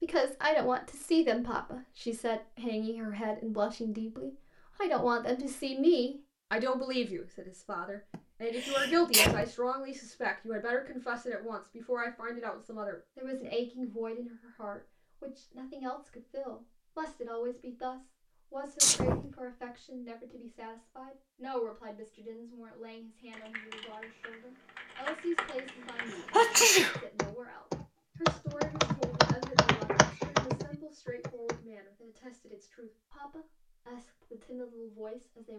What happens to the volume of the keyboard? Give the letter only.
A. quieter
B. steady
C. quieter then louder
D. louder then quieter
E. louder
E.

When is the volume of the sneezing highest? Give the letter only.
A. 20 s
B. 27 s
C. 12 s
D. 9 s
B.